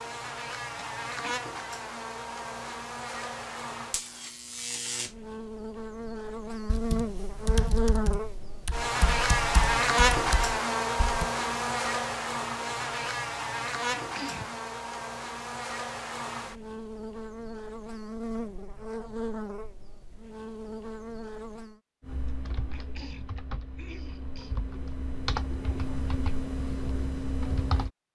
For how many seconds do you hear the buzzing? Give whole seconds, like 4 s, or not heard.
22 s.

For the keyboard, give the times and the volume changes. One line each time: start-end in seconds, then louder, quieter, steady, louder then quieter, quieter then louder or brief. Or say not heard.
6.7-11.2 quieter then louder
22.0-27.9 louder.